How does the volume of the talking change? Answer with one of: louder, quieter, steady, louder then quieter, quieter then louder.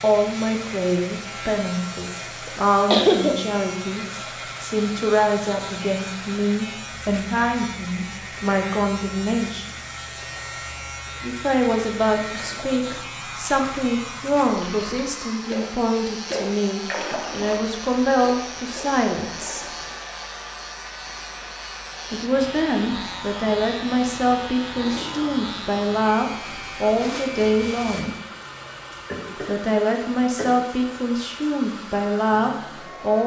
steady.